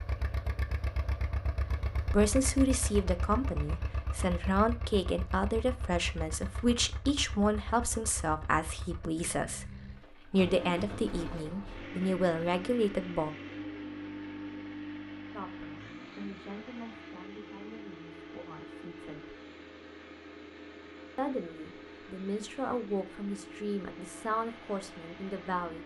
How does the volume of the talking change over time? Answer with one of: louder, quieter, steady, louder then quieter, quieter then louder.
quieter then louder.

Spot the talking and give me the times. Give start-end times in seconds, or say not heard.
2.1-13.3, 15.3-19.4, 21.1-25.8.